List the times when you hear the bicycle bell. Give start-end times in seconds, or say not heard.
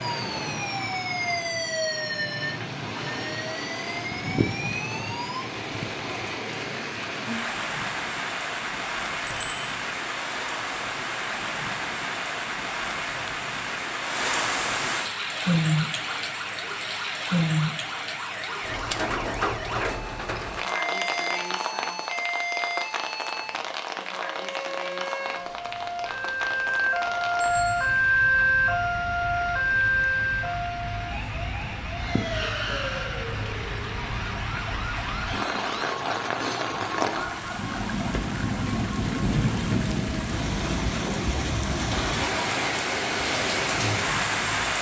9.2-9.7, 27.4-27.9.